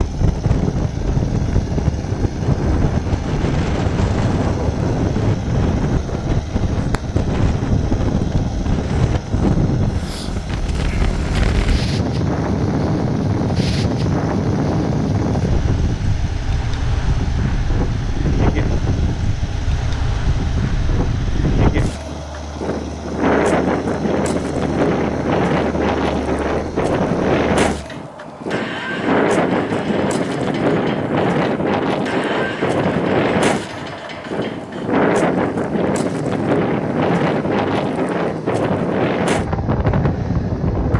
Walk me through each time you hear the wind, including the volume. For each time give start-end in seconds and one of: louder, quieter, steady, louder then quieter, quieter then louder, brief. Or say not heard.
0.0-40.9 steady.